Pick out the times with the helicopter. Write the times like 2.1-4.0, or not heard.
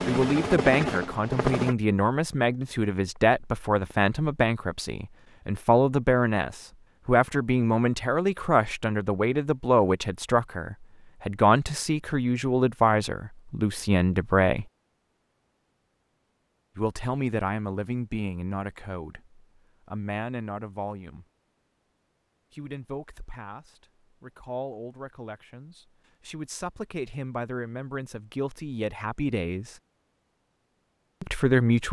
0.0-1.8.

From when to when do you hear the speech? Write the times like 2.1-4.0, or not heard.
0.1-14.7, 16.8-21.2, 22.5-29.8, 31.2-31.8.